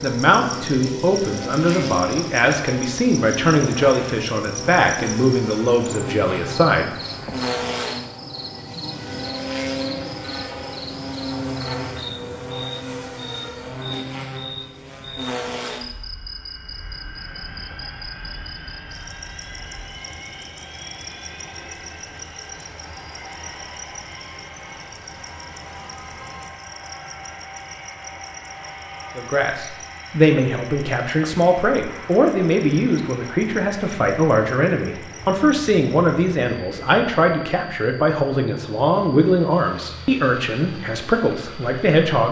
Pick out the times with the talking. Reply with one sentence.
The talking can be heard from 0.0 to 6.9 s and from 29.1 to 42.2 s.